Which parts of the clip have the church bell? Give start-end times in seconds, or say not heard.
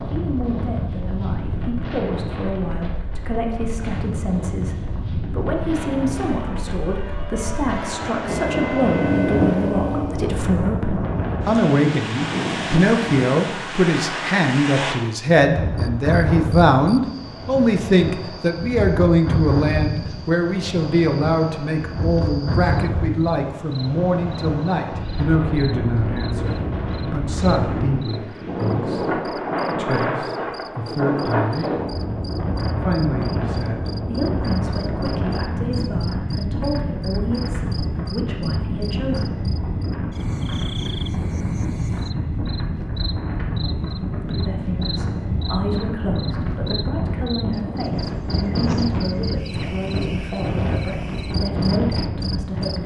5.7-10.3.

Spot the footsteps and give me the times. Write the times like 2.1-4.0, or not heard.
not heard.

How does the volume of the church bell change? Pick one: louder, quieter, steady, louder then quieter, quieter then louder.
louder.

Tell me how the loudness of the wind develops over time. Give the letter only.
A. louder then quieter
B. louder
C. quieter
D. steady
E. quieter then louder
D.